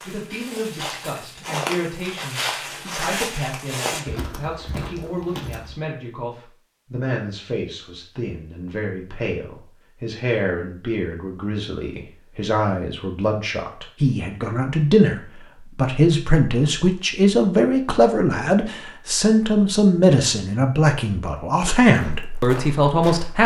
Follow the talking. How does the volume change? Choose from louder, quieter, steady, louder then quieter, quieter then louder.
louder.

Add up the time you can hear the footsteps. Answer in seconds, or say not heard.
7 s.